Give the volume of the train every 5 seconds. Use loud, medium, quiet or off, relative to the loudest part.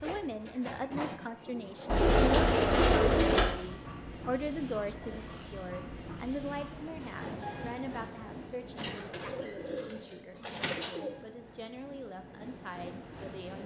loud, loud, medium.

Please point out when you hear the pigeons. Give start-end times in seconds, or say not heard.
1.9-3.5, 8.8-11.2.